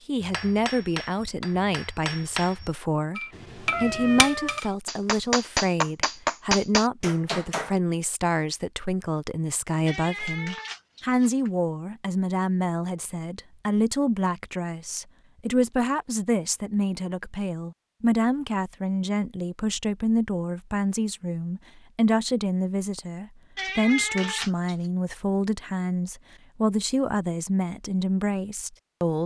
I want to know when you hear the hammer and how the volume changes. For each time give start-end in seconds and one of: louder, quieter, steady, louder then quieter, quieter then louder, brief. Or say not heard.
0.2-7.8 louder.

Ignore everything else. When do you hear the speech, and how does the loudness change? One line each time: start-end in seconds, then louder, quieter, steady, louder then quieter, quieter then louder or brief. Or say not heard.
0.1-29.2 steady.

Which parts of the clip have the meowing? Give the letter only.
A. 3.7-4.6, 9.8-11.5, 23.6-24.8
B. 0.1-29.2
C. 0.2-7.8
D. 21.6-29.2
A.